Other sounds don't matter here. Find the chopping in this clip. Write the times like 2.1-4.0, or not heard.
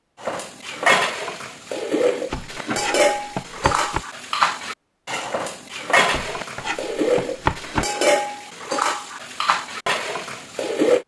2.3-4.0, 6.1-7.8.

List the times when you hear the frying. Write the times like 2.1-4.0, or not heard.
not heard.